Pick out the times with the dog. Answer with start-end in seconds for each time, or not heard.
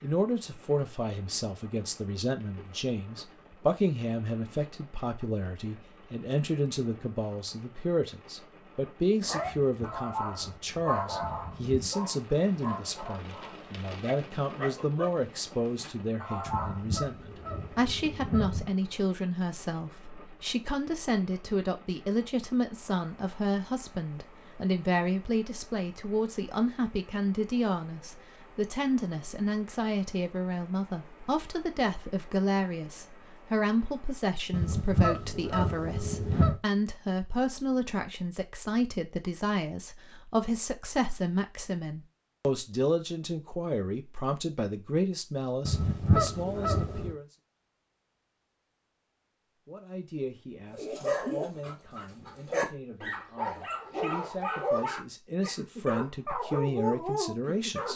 9.2-16.8, 50.7-57.9.